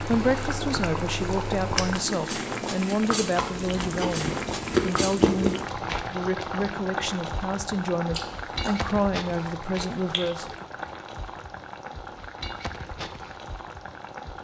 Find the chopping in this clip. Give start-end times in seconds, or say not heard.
not heard.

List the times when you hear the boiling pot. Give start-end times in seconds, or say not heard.
0.0-14.4.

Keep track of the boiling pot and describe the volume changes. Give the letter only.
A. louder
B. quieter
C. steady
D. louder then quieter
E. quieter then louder
B.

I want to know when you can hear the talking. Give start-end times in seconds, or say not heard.
0.0-10.4.